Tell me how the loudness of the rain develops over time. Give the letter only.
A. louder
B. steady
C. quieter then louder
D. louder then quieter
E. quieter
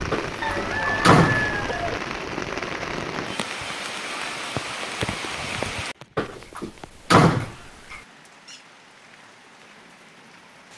E.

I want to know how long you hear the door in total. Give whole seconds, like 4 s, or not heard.
3 s.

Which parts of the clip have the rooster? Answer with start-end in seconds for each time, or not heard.
0.4-2.0.